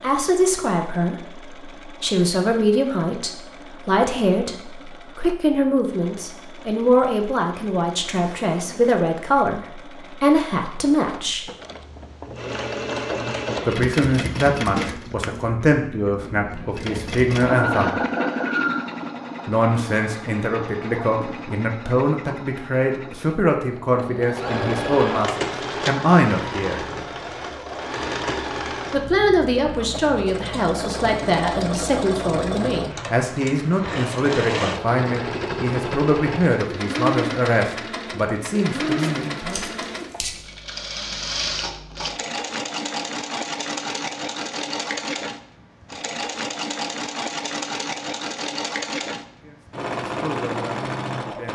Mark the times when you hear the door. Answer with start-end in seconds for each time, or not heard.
not heard.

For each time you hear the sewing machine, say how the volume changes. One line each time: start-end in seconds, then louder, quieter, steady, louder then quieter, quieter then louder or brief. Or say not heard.
0.0-51.5 louder.